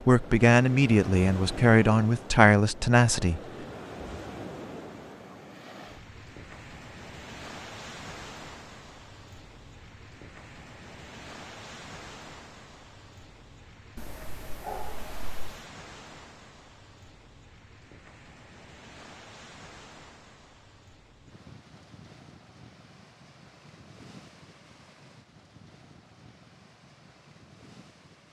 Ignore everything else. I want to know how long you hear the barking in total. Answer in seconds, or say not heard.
2 s.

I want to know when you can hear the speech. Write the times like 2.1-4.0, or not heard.
0.1-3.4.